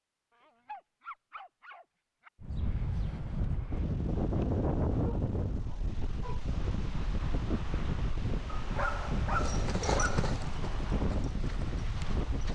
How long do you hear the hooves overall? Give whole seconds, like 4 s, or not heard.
3 s.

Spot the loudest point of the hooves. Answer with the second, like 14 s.
10 s.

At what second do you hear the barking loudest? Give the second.
9 s.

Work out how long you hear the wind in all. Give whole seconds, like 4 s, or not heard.
10 s.